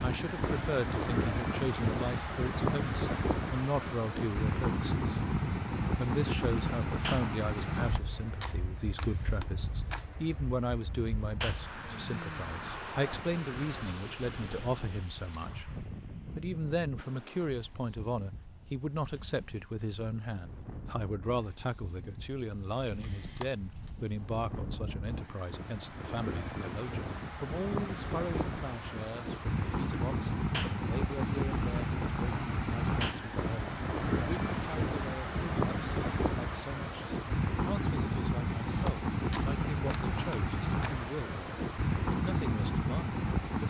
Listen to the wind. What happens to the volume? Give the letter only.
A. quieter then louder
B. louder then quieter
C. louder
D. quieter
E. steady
A.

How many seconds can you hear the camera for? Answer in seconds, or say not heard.
6 s.